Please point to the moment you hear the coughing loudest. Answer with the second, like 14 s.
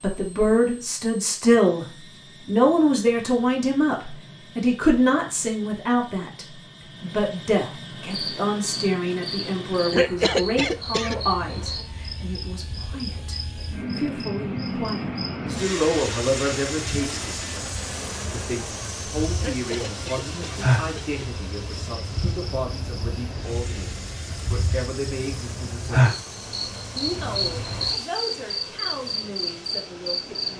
10 s.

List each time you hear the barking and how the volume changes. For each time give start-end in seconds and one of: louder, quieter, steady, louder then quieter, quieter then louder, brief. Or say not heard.
not heard.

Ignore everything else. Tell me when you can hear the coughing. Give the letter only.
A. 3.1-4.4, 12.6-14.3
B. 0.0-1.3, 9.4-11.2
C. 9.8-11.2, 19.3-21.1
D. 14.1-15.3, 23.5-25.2
C.